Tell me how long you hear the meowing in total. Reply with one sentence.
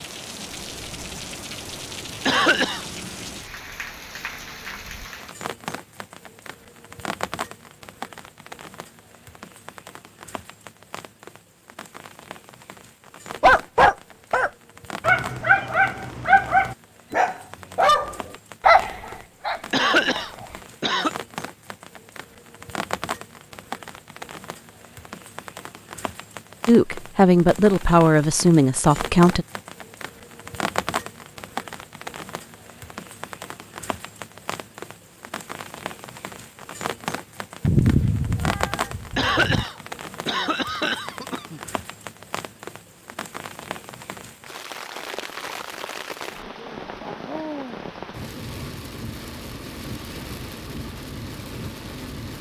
You can hear the meowing for 2 seconds altogether.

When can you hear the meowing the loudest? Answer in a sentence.
The volume of the meowing peaks at 38 seconds.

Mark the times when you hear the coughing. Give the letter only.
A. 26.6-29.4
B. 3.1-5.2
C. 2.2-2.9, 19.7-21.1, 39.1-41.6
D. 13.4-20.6
C.